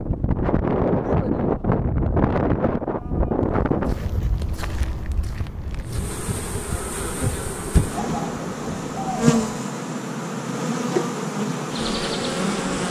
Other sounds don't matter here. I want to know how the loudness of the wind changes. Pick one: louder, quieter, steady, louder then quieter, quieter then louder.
quieter.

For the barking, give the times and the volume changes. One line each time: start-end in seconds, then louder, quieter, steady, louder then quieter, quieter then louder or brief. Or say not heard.
not heard.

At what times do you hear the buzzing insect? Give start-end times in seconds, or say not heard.
5.8-12.8.